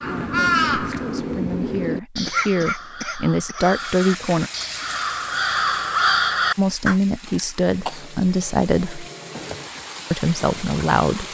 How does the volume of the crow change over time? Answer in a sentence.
The volume of the crow goes down, then up.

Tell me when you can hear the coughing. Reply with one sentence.
You can hear the coughing from 2.2 to 3.8 s and from 7.7 to 9.7 s.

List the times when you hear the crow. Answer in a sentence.
You can hear the crow from 0.0 to 7.0 s.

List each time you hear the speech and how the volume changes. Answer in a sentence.
You can hear the speech from 0.0 to 4.5 s, getting louder; briefly from 6.5 to 9.1 s; and briefly from 10.1 to 11.2 s.